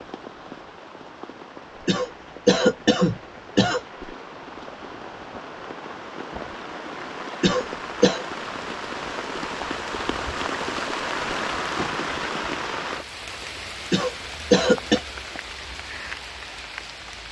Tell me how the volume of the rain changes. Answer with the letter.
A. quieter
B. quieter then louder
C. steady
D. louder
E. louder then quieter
E.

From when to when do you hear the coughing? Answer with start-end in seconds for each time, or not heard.
1.9-3.8, 7.4-8.2, 13.9-15.0.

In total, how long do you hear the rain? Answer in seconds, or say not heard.
17 s.